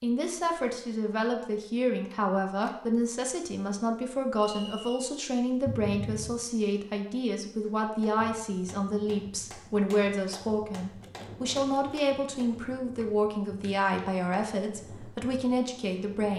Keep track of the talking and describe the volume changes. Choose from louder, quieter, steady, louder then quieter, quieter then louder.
steady.